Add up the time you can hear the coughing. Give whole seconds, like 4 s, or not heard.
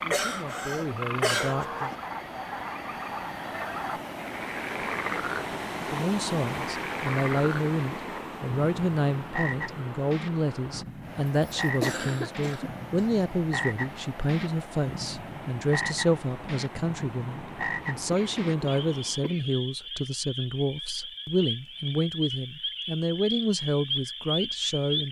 5 s.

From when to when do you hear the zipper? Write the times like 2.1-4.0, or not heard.
not heard.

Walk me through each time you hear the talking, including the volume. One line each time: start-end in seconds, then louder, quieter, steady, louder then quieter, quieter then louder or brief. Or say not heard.
0.0-1.9 brief
5.8-25.0 steady.